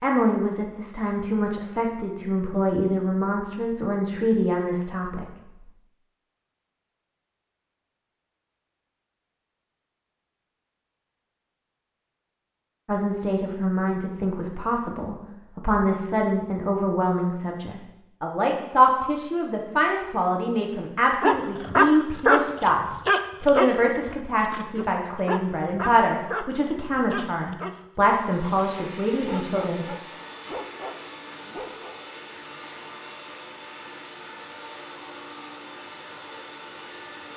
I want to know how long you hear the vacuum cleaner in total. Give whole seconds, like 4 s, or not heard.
9 s.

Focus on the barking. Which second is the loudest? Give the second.
22 s.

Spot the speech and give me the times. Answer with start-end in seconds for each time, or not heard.
0.0-5.2, 12.8-22.8, 23.4-29.9.